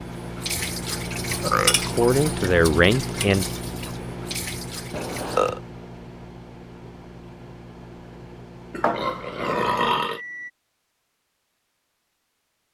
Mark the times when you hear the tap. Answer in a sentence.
The tap can be heard from 0.0 to 5.4 s.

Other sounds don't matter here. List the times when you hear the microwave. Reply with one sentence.
The microwave can be heard from 0.0 to 10.5 s.